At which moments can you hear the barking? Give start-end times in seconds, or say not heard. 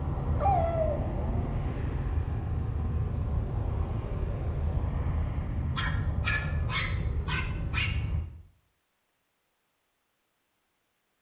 0.3-1.6, 5.8-7.9.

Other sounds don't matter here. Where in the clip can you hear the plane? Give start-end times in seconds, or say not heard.
0.0-8.2.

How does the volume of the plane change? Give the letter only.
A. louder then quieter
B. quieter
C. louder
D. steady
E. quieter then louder
D.